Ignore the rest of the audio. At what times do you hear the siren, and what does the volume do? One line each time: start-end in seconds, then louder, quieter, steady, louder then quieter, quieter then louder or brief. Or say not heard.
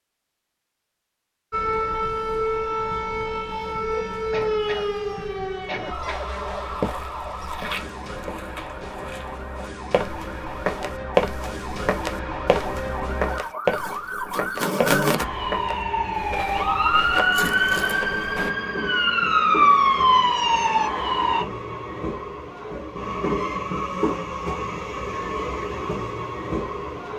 1.5-21.4 quieter then louder.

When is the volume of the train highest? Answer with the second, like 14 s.
24 s.